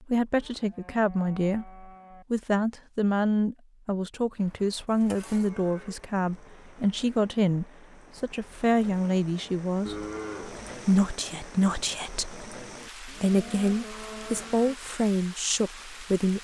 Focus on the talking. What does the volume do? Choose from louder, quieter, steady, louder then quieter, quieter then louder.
steady.